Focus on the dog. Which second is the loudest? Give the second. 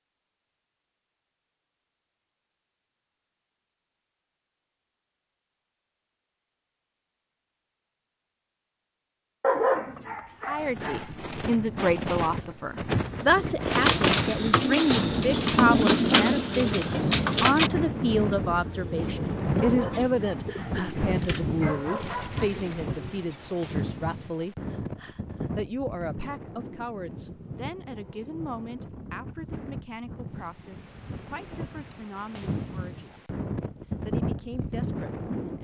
10 s.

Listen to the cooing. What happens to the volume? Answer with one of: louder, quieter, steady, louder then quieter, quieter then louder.
quieter.